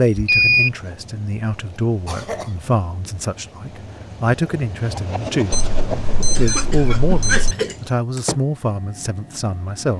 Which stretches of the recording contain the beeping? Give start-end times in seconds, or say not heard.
0.1-0.7, 5.5-7.5.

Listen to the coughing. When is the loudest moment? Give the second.
7 s.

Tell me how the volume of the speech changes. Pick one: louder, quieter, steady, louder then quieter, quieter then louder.
steady.